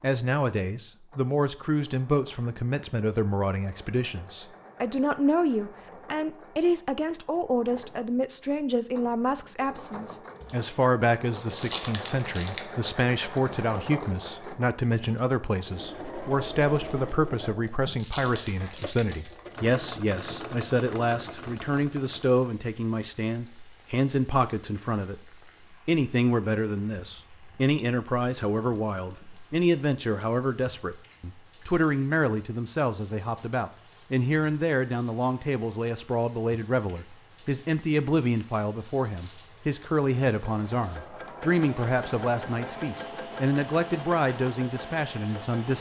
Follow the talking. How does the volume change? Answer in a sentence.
The volume of the talking stays about the same.